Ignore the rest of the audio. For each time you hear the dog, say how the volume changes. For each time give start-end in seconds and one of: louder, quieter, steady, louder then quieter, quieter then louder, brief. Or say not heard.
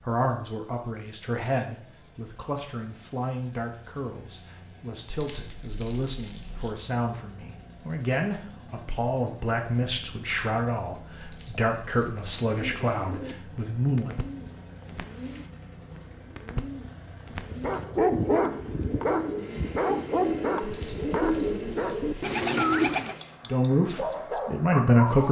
17.5-25.2 quieter.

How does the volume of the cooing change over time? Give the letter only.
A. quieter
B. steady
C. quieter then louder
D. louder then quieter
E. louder
E.